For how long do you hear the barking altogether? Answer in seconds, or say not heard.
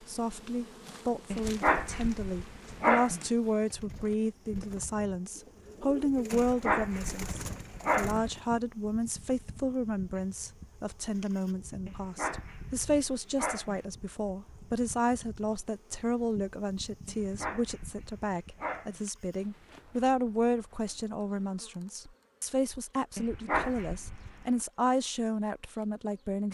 9 s.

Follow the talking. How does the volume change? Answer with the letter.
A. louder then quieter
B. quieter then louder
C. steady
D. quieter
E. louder
C.